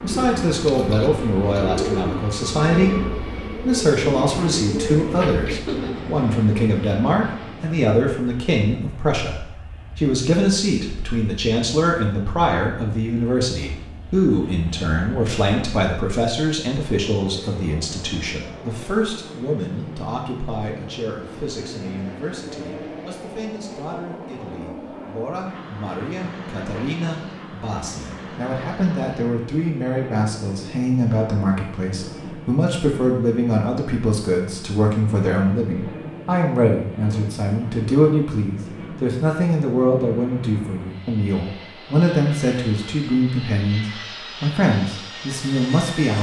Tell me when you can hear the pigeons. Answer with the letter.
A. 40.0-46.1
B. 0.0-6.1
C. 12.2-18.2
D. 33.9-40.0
B.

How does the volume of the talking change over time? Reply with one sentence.
The loudness of the talking goes down, then up.